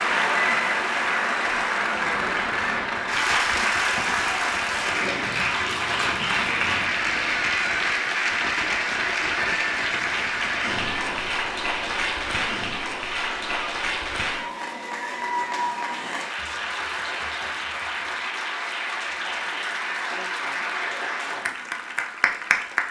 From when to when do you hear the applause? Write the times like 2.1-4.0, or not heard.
0.0-22.8.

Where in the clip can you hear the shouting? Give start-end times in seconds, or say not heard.
13.1-13.8.